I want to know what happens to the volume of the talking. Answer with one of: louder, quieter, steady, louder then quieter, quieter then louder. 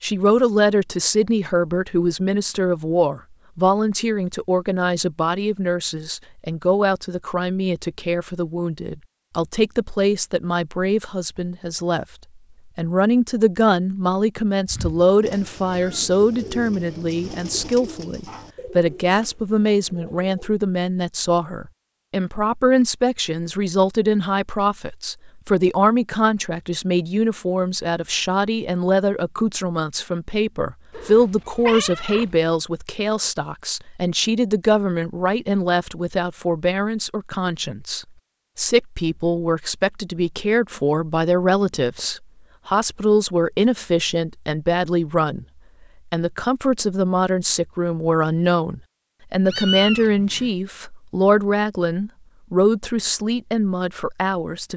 steady.